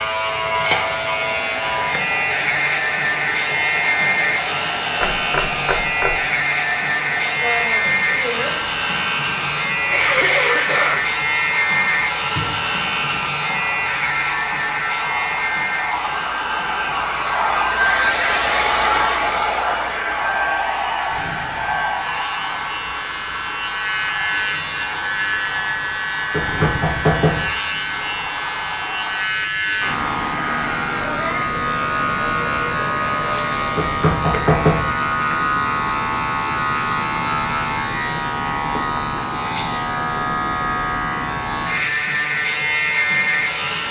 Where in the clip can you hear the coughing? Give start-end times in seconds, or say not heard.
9.9-11.1.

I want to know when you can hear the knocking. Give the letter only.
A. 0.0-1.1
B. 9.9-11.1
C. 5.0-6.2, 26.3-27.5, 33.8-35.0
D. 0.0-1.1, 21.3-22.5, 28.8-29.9
C.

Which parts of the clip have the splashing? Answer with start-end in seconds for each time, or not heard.
not heard.